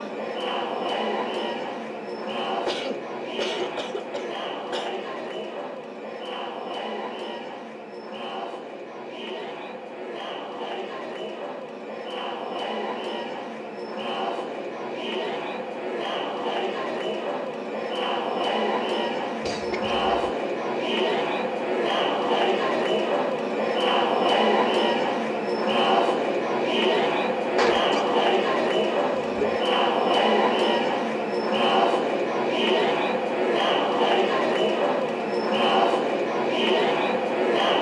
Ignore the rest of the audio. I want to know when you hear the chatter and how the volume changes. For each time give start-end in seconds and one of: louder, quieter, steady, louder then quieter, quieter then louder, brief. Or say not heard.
0.0-37.7 louder.